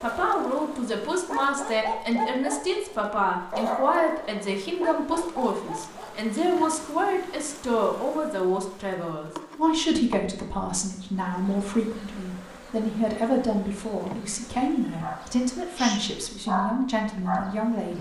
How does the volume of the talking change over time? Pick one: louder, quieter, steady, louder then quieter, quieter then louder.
steady.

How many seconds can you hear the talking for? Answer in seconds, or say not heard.
18 s.